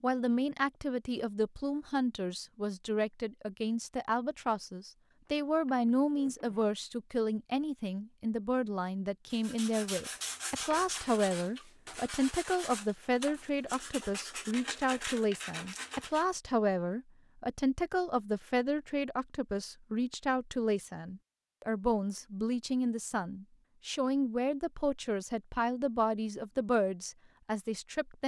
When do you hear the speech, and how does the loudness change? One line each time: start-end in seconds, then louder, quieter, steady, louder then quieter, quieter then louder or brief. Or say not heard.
0.0-28.2 steady.